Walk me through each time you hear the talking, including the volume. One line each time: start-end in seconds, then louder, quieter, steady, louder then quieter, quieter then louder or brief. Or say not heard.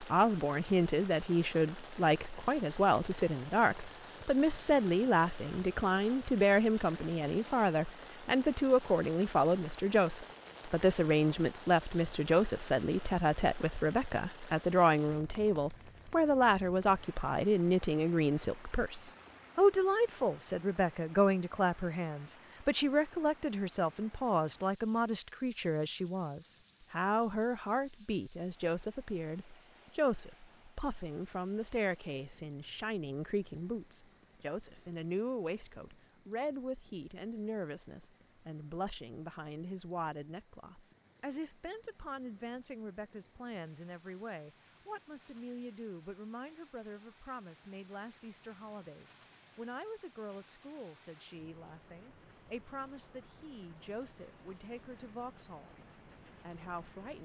0.0-55.8 quieter
56.5-57.2 brief.